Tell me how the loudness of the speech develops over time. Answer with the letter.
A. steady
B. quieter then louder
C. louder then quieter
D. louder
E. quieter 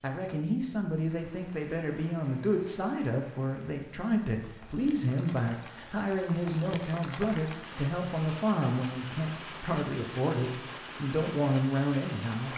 A.